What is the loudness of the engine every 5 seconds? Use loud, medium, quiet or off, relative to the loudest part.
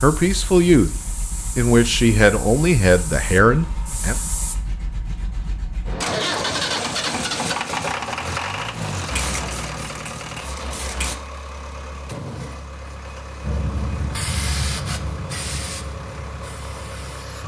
quiet, loud, medium, medium.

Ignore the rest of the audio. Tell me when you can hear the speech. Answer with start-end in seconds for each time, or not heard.
0.0-0.9, 1.6-4.2.